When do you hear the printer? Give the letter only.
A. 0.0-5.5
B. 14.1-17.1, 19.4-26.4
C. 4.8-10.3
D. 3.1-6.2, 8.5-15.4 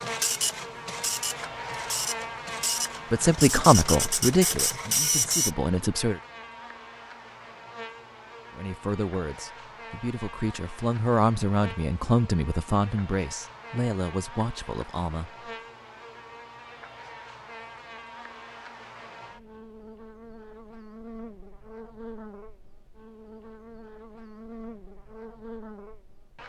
A.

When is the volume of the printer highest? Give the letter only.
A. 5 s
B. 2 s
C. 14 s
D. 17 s
A.